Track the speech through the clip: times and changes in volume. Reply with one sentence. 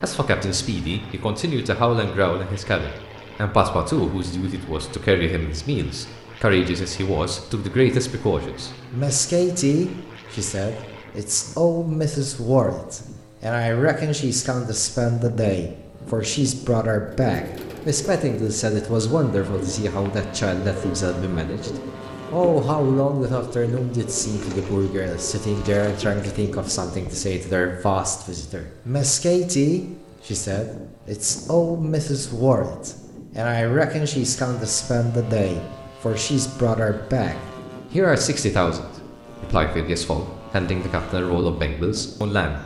The speech can be heard from 0.0 to 21.7 s, at a steady volume; and from 22.3 to 42.6 s, at a steady volume.